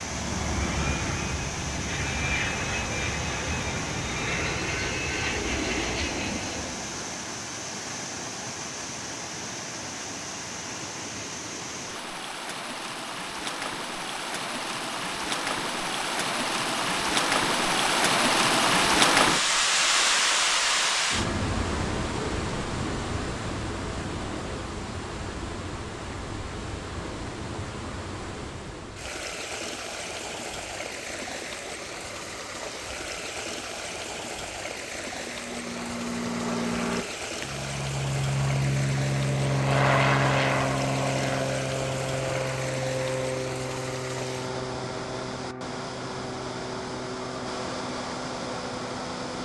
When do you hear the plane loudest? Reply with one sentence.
The loudest moment of the plane is at 40 seconds.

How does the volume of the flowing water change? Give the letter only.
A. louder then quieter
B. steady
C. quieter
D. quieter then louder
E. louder
A.